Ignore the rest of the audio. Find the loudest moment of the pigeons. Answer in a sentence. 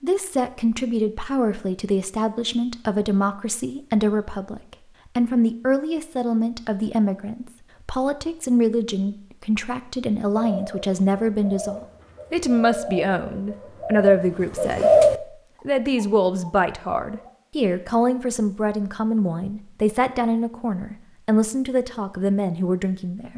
The volume of the pigeons peaks at 15 seconds.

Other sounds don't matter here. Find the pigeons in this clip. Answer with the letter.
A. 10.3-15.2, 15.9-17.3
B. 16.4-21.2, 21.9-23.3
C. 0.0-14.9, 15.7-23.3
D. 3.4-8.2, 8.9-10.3
A.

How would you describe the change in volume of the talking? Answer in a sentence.
The loudness of the talking stays about the same.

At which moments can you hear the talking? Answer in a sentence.
The talking can be heard from 0.0 to 14.9 s and from 15.7 to 23.3 s.